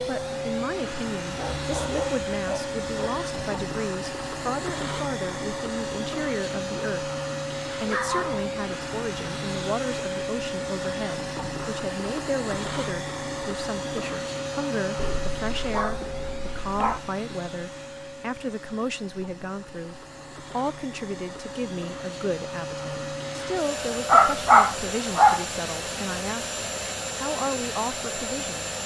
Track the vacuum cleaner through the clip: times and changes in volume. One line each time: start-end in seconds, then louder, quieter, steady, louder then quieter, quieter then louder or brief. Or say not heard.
0.0-28.8 quieter then louder.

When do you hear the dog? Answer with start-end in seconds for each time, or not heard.
1.4-3.2, 7.8-8.5, 14.9-17.0, 24.1-25.4.